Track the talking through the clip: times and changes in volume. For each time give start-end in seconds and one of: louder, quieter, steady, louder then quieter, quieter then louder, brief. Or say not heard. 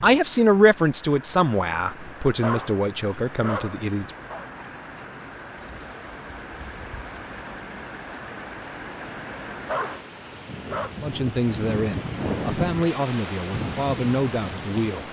0.0-4.1 quieter
11.0-15.0 steady.